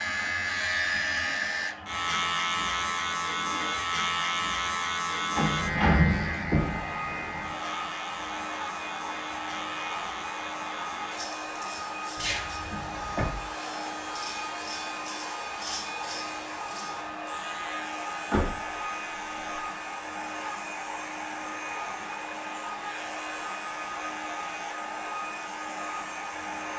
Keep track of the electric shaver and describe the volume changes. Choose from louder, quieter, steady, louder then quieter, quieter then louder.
quieter.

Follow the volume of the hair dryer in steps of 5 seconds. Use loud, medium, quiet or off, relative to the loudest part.
medium, loud, loud, loud, loud, loud.